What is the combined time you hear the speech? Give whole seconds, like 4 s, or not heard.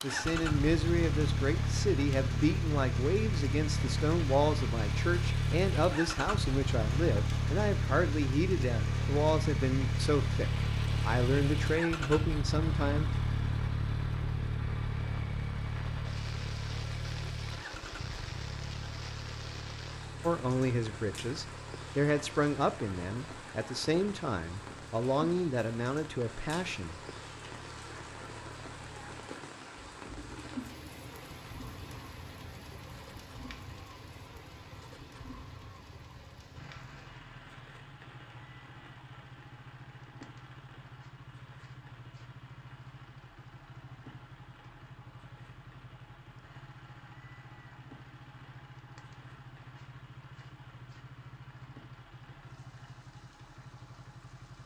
20 s.